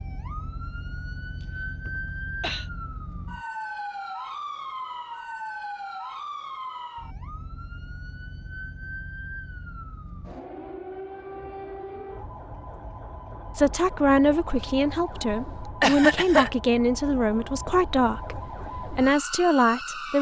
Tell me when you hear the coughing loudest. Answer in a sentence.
The volume of the coughing peaks at 16 seconds.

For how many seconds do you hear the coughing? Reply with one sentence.
The coughing can be heard for 2 seconds in total.